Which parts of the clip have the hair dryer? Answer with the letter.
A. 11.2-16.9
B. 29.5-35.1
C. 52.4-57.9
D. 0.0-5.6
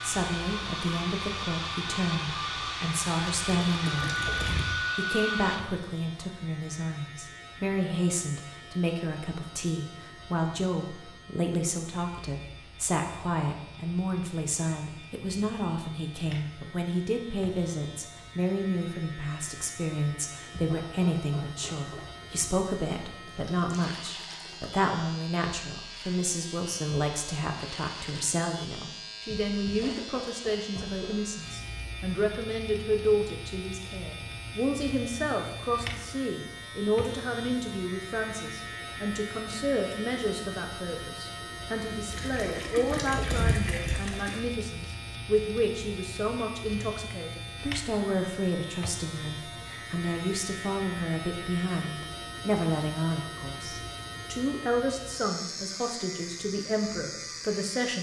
D.